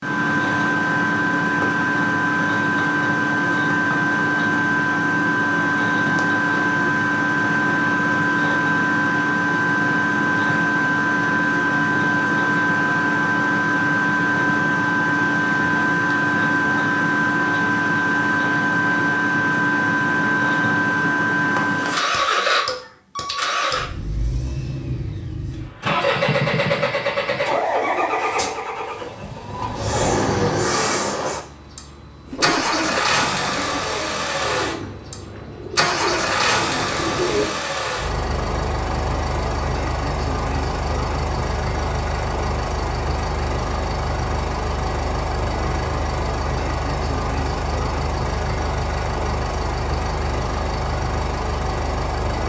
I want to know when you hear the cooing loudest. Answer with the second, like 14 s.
37 s.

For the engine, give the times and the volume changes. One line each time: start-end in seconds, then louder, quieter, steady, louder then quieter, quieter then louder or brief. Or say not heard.
0.0-52.4 quieter.